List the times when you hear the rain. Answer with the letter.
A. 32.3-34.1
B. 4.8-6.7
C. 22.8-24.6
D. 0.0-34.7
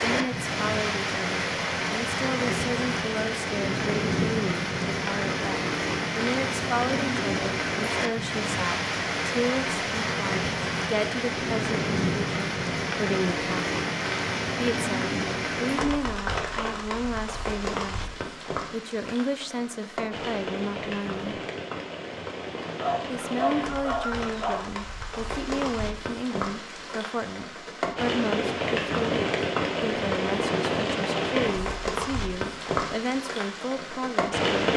D.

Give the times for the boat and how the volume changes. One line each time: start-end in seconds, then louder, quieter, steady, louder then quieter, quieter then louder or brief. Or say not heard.
not heard.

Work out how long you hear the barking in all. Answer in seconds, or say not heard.
2 s.